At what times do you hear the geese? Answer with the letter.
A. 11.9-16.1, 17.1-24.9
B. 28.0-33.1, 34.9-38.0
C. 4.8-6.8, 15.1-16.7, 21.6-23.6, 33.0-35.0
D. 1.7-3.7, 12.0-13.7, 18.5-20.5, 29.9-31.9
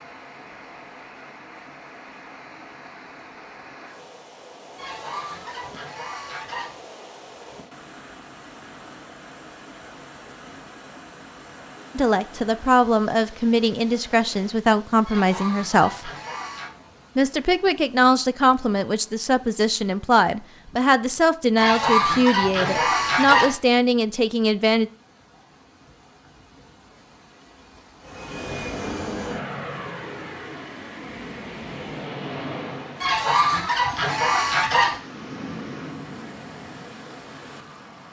C.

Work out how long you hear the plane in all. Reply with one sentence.
You can hear the plane for 8 seconds altogether.